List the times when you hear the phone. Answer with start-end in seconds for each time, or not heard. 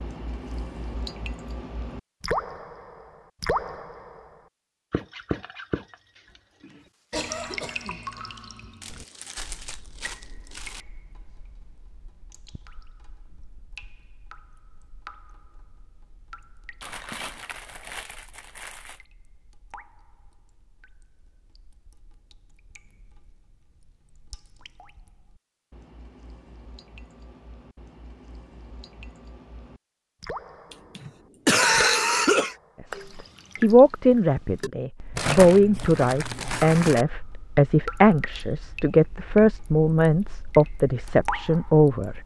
not heard.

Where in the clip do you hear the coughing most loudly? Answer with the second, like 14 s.
32 s.